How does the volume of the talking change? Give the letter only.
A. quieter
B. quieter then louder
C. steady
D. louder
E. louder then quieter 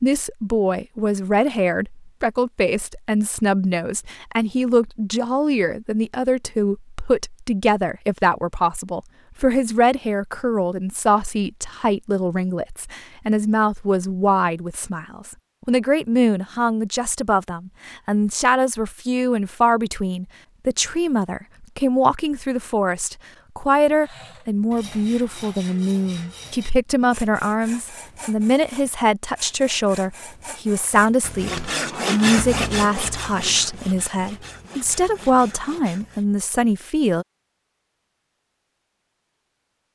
C.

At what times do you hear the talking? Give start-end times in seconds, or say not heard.
0.0-37.2.